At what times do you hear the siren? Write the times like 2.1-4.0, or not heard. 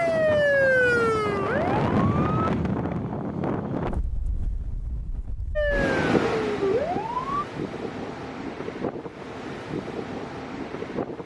0.0-2.5, 5.5-7.5.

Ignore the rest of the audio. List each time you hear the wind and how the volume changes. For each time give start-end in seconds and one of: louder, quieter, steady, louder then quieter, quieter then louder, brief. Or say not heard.
0.0-11.2 quieter.